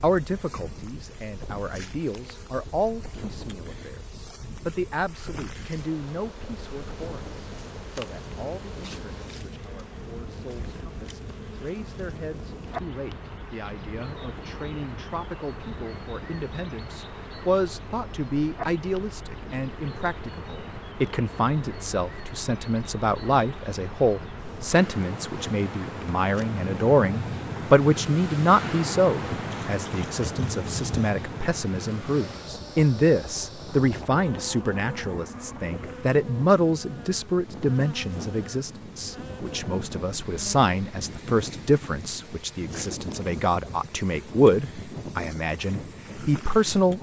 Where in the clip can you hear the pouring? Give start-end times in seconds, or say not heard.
29.5-31.1.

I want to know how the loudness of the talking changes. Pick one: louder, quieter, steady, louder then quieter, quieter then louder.
louder.